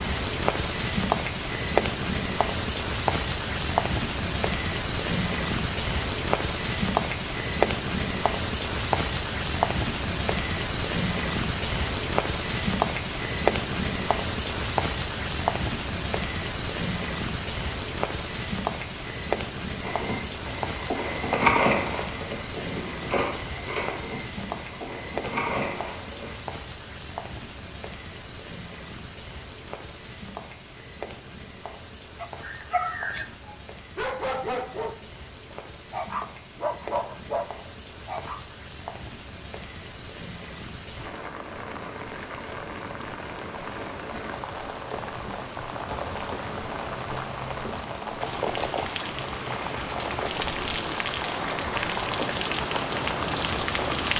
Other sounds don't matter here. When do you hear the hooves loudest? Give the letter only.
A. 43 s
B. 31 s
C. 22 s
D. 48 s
C.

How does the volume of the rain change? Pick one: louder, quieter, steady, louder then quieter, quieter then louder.
quieter then louder.